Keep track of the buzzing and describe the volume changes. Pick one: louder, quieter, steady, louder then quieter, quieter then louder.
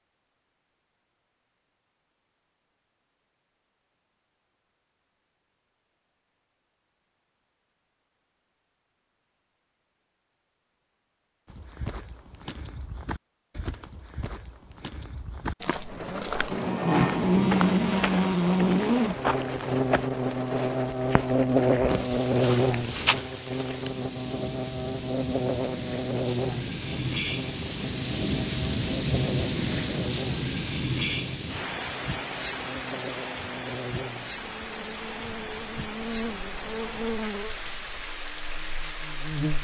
quieter.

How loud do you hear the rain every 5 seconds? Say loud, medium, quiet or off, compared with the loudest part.
off, off, off, medium, medium, loud, loud, medium.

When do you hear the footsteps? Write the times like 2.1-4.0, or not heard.
11.4-23.2.